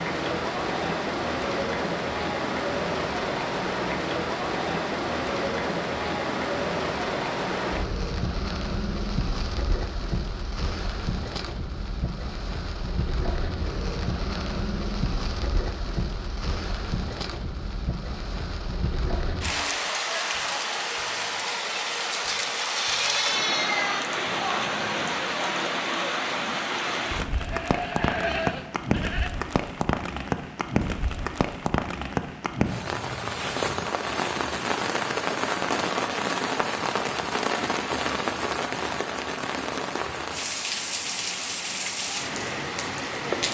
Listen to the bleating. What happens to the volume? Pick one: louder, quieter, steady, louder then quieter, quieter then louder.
quieter then louder.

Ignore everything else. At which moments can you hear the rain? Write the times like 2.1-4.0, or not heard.
0.0-43.4.